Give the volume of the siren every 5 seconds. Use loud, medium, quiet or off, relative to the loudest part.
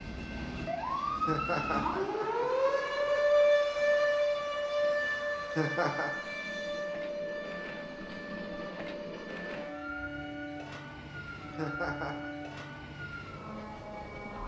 loud, medium, quiet.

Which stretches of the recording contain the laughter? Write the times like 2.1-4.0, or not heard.
1.1-2.5, 5.3-6.1, 11.4-12.3.